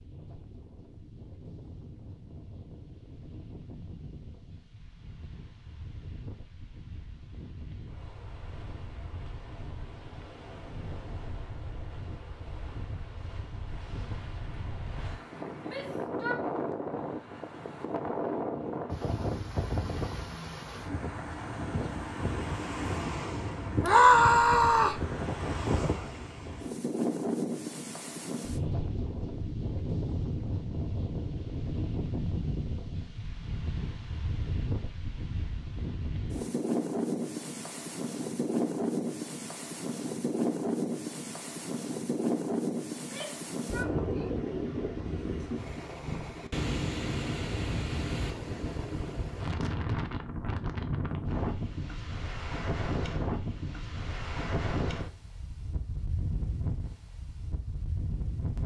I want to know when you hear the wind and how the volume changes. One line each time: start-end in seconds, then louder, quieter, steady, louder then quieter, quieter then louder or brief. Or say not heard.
0.0-58.6 louder.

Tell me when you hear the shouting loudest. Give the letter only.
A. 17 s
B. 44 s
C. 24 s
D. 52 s
C.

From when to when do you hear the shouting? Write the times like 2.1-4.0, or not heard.
15.7-16.4, 23.8-25.0, 43.0-44.4.